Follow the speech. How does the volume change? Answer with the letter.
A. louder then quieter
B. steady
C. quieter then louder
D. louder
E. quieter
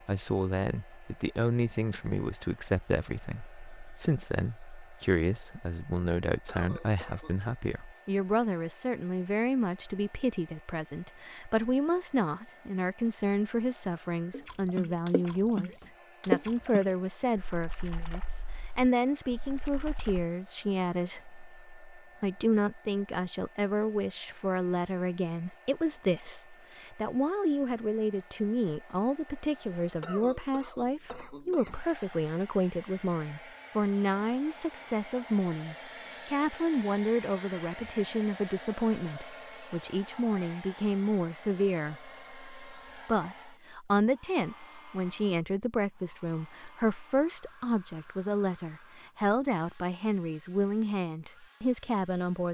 B.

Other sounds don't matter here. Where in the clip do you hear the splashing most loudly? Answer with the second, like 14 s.
16 s.